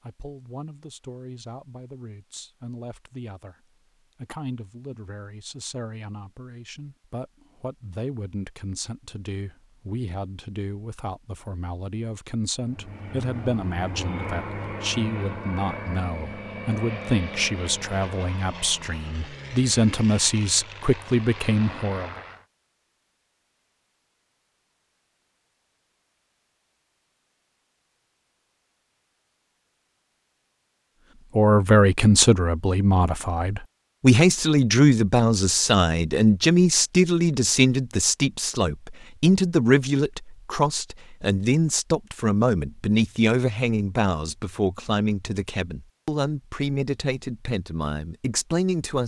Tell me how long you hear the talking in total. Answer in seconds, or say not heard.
39 s.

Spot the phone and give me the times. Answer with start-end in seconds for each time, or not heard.
not heard.